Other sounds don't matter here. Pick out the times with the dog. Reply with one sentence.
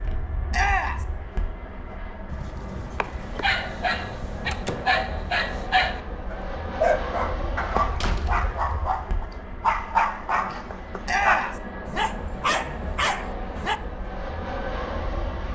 You can hear the dog from 2.2 to 13.8 s.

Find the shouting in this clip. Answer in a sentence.
The shouting can be heard from 0.5 to 1.1 s and from 11.1 to 11.6 s.